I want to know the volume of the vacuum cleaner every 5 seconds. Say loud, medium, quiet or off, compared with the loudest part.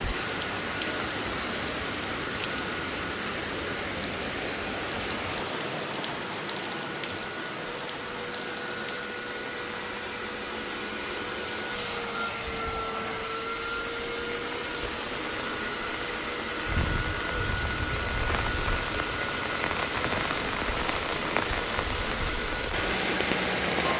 medium, medium, loud, loud, loud.